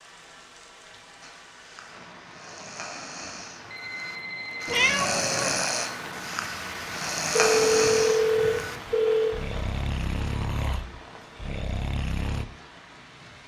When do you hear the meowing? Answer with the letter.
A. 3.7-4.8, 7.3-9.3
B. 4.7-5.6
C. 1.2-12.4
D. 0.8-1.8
B.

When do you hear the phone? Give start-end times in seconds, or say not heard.
3.7-4.8, 7.3-9.3.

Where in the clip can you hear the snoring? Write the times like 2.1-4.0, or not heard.
1.2-12.4.